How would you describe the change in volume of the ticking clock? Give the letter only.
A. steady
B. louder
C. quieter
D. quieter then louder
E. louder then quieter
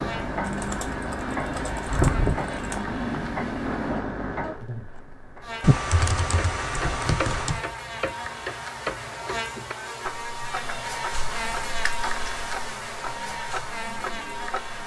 C.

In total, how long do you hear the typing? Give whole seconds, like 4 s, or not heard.
6 s.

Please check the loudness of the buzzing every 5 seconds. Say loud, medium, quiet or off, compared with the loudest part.
medium, loud, loud.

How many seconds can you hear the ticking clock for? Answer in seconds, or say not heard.
15 s.